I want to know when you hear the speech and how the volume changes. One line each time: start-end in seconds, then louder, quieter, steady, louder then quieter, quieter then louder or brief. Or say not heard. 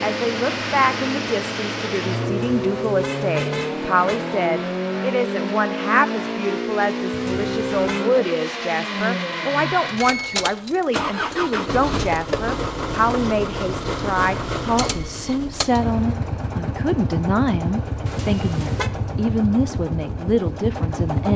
0.0-21.3 steady.